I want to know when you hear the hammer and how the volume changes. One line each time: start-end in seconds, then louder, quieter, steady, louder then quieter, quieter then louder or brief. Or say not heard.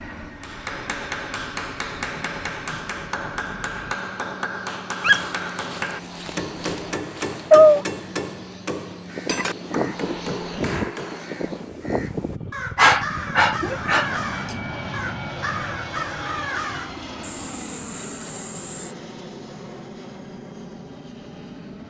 0.3-11.2 steady.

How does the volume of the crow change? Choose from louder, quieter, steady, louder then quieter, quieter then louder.
quieter.